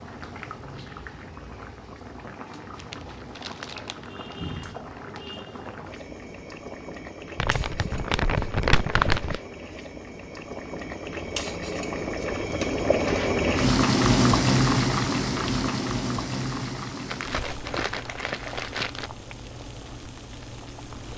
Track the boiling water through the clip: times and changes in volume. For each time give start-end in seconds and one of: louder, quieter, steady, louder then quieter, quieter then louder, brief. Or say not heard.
0.0-21.1 louder then quieter.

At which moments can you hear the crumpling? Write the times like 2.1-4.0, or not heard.
2.8-4.3, 7.3-9.4, 17.1-19.1.